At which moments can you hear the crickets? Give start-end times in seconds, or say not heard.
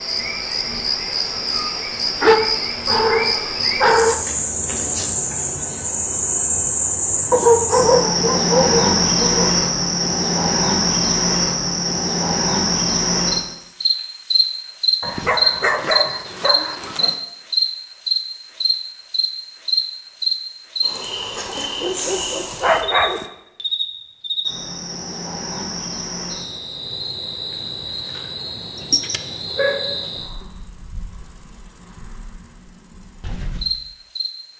0.0-34.3.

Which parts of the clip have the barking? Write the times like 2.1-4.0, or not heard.
2.2-4.2, 7.3-9.6, 15.0-17.1, 21.4-23.2, 28.8-30.1.